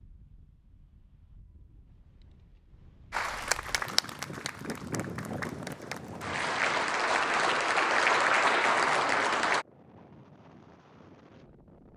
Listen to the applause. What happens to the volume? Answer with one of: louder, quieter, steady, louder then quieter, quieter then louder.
quieter then louder.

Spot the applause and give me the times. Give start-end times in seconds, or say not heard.
3.1-9.7.